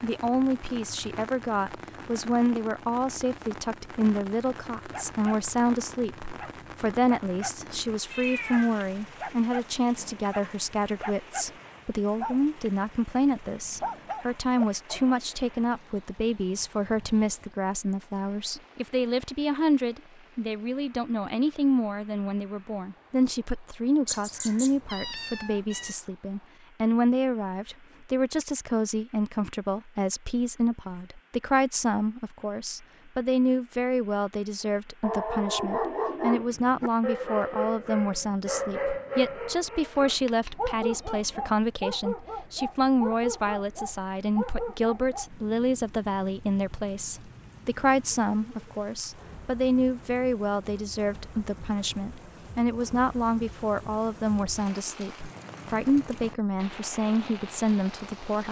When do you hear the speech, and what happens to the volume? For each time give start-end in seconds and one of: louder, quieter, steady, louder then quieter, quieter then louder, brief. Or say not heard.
0.0-58.4 steady.